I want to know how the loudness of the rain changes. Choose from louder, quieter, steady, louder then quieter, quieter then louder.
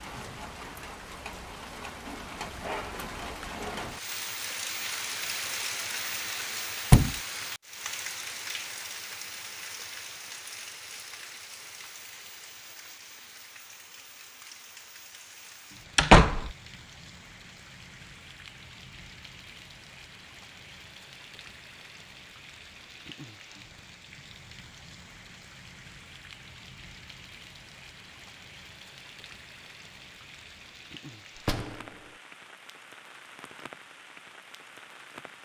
quieter.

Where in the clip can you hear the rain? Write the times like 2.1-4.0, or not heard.
0.0-35.4.